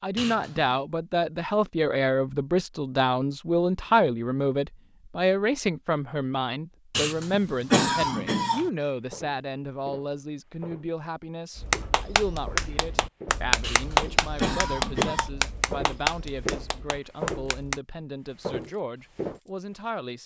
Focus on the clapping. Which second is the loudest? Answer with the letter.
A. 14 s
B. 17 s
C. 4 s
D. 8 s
A.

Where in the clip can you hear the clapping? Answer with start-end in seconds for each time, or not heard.
11.6-17.8.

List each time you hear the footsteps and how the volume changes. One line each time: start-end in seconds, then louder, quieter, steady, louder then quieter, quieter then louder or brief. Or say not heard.
9.1-17.6 louder
18.2-19.4 brief.